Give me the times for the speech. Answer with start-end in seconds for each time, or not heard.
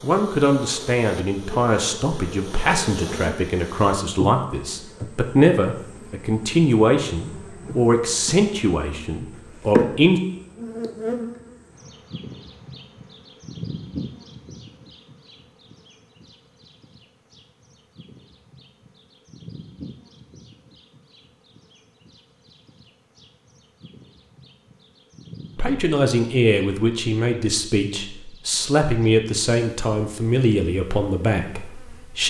0.0-10.2, 25.6-32.2.